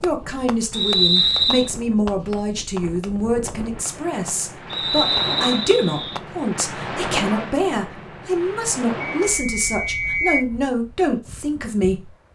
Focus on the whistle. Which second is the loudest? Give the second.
1 s.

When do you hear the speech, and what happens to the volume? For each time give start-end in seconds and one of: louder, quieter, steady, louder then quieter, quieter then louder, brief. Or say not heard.
0.0-12.1 steady.